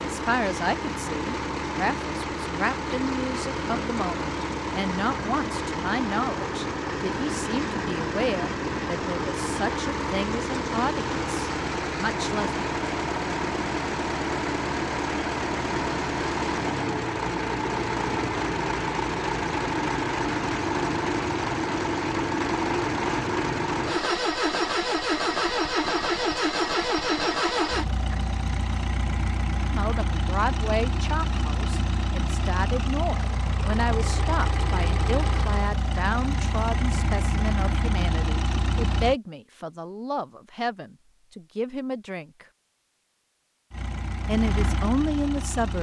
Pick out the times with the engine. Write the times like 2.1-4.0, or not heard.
0.0-39.1, 43.7-45.7.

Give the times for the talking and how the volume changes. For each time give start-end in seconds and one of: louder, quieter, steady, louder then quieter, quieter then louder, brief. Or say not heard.
0.0-12.6 steady
29.7-42.5 steady
44.2-45.7 brief.